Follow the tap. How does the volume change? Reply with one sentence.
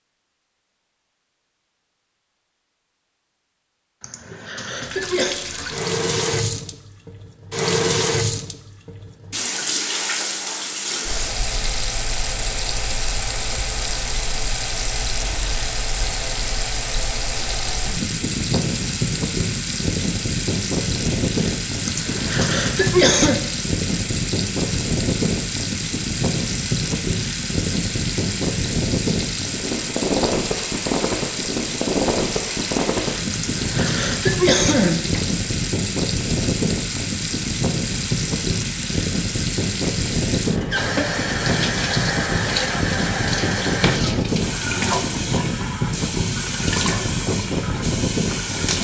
The volume of the tap stays about the same.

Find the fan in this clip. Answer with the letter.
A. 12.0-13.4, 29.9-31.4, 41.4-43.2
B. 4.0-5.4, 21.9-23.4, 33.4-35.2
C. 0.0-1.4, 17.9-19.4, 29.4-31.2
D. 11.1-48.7
D.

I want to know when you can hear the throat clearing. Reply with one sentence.
You can hear the throat clearing from 4.0 to 5.4 s, from 21.9 to 23.4 s and from 33.4 to 35.2 s.